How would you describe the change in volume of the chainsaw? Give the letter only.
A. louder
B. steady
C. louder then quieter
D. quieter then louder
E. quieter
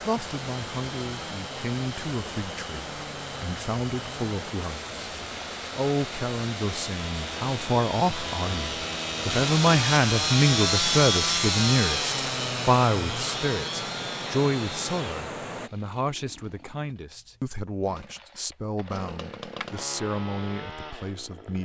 C.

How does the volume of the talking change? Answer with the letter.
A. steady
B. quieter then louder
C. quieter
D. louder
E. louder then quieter
E.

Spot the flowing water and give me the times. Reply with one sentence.
You can hear the flowing water from 0.0 to 15.7 s.